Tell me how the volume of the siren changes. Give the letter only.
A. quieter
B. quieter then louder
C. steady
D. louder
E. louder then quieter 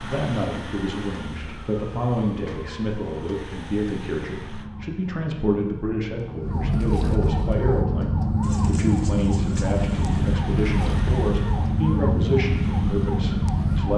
D.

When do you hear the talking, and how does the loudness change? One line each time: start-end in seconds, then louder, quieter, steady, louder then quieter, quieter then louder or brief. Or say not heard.
0.0-13.9 steady.